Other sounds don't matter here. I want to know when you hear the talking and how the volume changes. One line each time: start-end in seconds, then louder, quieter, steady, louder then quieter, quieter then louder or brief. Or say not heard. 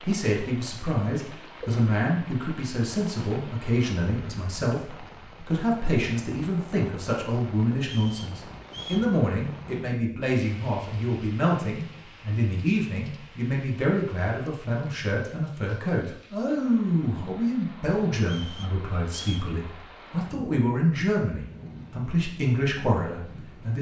0.1-23.7 steady.